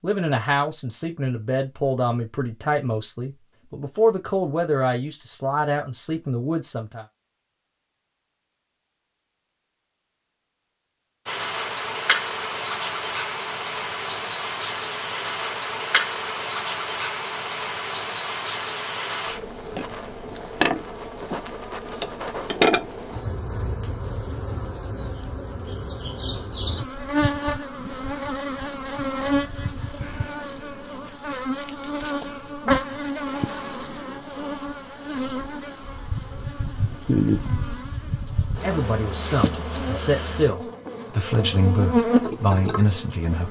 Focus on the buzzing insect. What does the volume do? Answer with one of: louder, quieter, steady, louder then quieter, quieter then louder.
steady.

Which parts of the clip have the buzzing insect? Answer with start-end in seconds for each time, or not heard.
11.2-43.4.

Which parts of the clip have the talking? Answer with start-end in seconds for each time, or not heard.
0.0-7.0, 38.6-43.4.